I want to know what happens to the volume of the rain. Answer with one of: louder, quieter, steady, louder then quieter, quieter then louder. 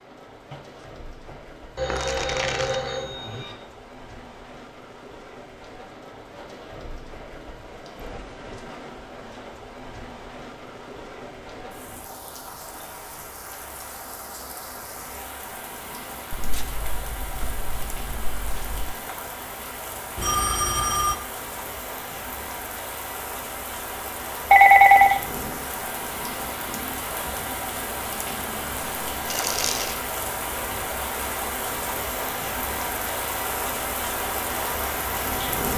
louder.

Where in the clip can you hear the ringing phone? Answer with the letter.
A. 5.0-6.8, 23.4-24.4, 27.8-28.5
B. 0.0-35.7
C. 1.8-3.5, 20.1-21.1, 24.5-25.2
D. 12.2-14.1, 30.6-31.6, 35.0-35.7
C.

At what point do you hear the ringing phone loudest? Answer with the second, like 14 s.
25 s.